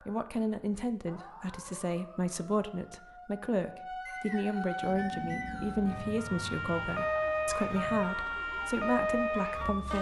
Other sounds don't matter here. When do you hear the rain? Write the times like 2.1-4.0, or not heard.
not heard.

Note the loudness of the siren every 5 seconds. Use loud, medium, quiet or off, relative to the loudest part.
medium, loud.